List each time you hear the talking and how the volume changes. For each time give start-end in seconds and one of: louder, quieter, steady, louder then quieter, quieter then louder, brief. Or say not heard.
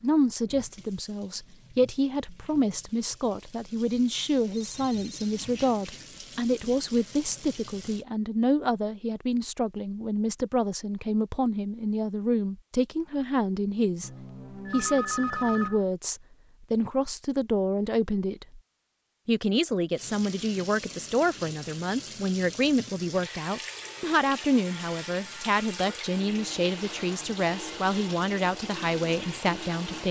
0.0-18.6 steady
19.2-30.0 steady.